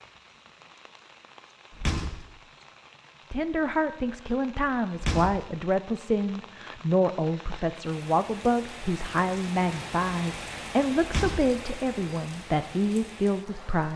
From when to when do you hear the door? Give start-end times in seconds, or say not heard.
1.7-2.2, 5.0-5.5, 11.0-11.6.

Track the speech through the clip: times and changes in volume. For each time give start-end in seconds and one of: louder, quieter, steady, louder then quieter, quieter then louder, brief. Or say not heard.
3.3-13.9 steady.